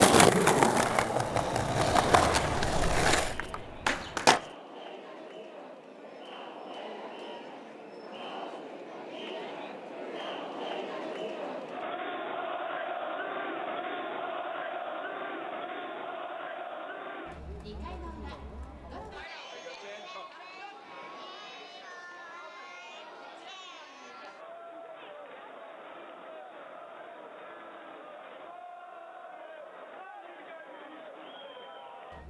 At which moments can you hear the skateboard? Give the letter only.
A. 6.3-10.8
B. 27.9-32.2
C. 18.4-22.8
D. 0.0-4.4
D.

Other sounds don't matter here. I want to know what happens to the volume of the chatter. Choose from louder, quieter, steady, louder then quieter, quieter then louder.
louder then quieter.